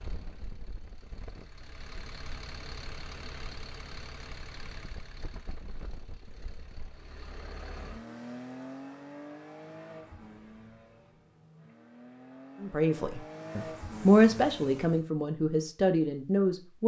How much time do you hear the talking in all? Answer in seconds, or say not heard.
4 s.